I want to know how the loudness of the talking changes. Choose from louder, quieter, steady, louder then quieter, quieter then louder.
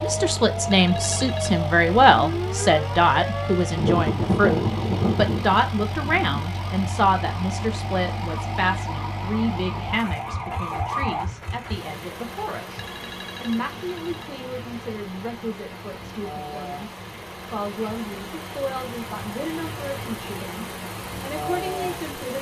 quieter.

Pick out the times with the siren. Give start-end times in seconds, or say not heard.
0.0-11.2.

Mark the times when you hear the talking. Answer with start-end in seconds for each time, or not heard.
0.0-22.3.